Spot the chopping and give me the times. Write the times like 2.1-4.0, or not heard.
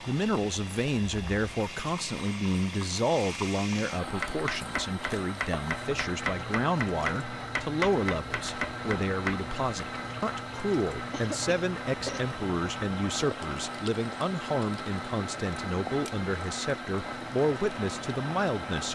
4.0-9.4.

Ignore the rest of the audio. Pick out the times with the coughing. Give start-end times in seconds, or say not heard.
11.1-12.2.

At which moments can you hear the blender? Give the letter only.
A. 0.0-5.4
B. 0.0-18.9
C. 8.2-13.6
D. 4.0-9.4
B.